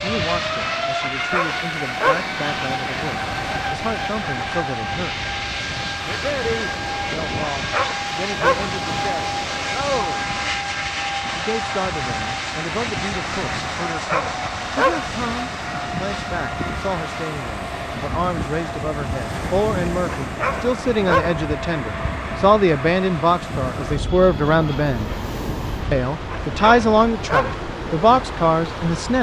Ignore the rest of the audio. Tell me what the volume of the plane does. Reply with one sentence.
The loudness of the plane goes down.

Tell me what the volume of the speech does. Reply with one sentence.
The loudness of the speech goes up.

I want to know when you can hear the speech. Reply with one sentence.
The speech can be heard from 0.0 to 5.2 s, from 6.0 to 10.2 s, from 11.3 to 25.1 s and from 25.9 to 29.1 s.